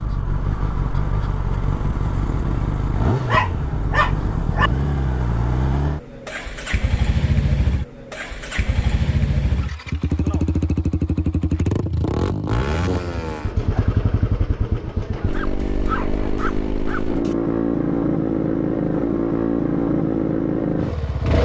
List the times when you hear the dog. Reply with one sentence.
You can hear the dog from 3.2 to 4.7 s and from 15.3 to 17.4 s.